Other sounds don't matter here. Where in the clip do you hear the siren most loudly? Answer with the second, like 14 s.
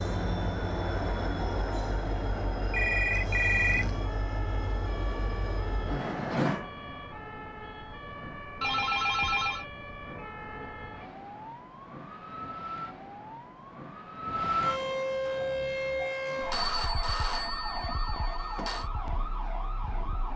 15 s.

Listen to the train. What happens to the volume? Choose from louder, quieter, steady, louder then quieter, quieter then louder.
quieter.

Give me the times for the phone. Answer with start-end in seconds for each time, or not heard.
2.7-4.0, 8.6-9.7, 16.5-18.9.